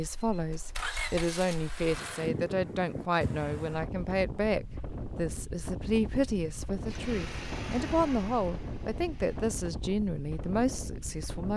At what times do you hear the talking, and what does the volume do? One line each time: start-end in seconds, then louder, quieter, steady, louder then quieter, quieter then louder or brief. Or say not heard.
0.0-11.5 steady.